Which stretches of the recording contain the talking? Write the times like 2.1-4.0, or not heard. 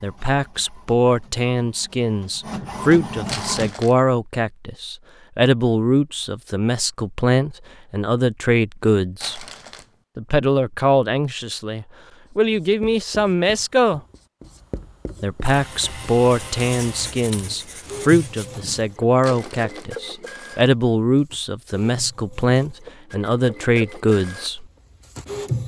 0.0-9.4, 10.2-14.0, 15.2-24.6.